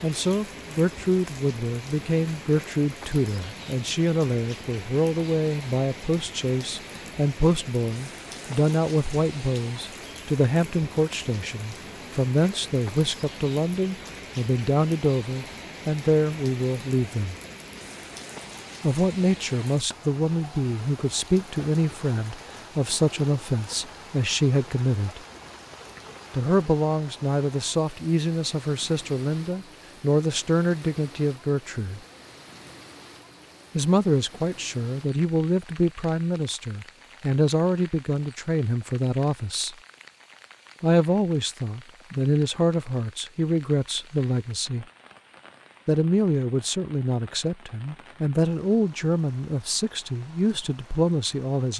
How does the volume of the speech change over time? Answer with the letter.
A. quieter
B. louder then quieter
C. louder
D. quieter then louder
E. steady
E.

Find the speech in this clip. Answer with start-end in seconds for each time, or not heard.
0.0-17.4, 18.8-25.2, 26.3-32.0, 33.8-39.8, 40.8-44.9, 45.9-51.7.